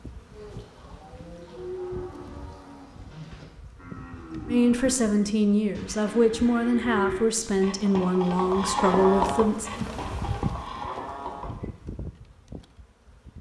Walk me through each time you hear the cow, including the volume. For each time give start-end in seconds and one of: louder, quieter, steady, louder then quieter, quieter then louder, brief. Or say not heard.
0.3-11.8 louder.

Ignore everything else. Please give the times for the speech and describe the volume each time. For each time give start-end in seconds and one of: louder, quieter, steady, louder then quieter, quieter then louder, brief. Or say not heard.
4.5-9.7 steady.